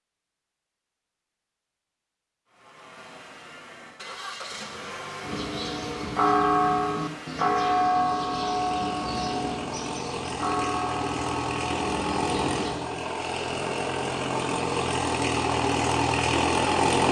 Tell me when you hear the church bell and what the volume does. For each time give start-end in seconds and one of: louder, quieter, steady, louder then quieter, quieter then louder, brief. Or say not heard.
5.2-12.8 quieter.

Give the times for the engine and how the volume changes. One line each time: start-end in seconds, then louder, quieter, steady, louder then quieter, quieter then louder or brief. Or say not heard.
2.5-17.0 louder.